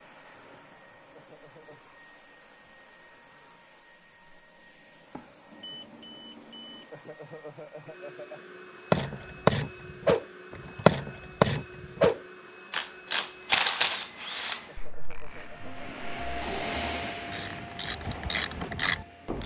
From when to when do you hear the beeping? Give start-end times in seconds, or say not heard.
5.5-6.9.